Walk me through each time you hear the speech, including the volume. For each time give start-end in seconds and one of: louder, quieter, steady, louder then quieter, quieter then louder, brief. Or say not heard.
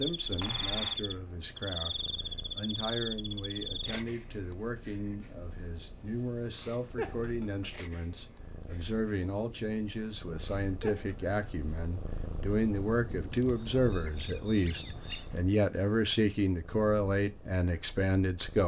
0.0-18.6 louder.